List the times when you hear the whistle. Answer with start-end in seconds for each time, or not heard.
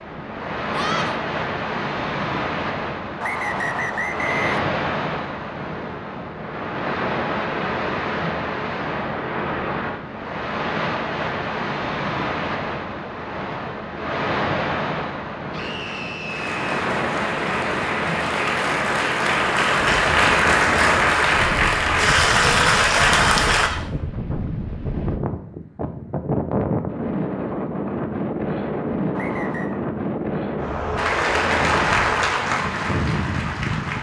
3.2-4.7, 29.1-29.8.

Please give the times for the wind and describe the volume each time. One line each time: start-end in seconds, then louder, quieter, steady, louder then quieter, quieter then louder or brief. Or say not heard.
0.0-33.9 steady.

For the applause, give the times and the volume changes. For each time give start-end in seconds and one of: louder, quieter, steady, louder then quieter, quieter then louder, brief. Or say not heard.
15.6-23.7 louder
30.9-33.9 brief.